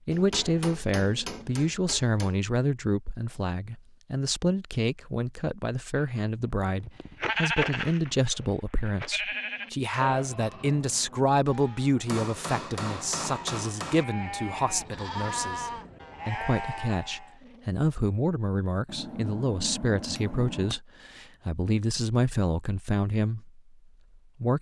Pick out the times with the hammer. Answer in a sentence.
The hammer can be heard from 0.1 to 2.4 s, from 12.1 to 14.1 s and from 18.9 to 20.8 s.